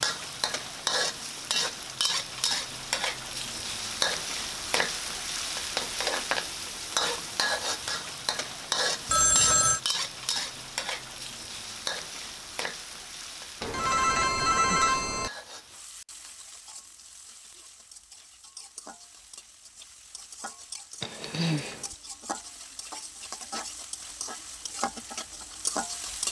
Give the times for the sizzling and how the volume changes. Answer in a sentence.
You can hear the sizzling from 0.0 to 26.2 s, getting quieter then louder.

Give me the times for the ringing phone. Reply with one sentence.
The ringing phone can be heard from 9.1 to 9.8 s and from 13.6 to 15.3 s.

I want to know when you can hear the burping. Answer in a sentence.
You can hear the burping from 21.0 to 21.9 s.